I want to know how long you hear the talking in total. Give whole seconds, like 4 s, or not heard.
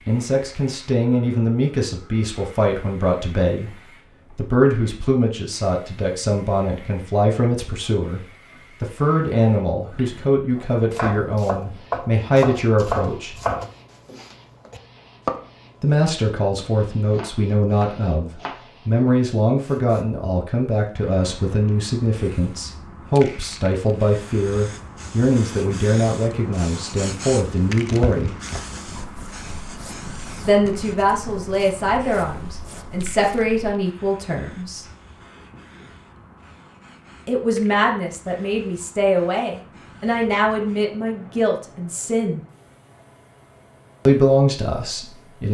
37 s.